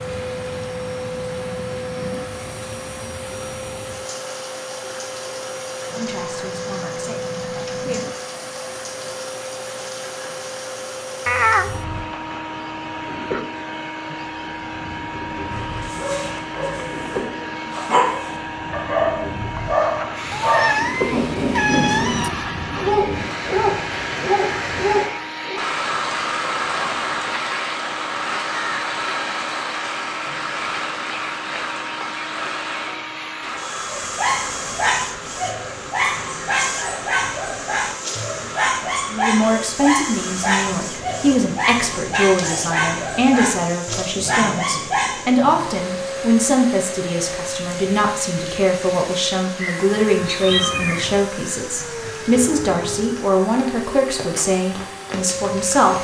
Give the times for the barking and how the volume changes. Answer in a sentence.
The barking can be heard from 15.5 to 25.6 s, getting louder; and from 33.9 to 45.4 s, at a steady volume.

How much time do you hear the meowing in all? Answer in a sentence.
You can hear the meowing for 4 seconds altogether.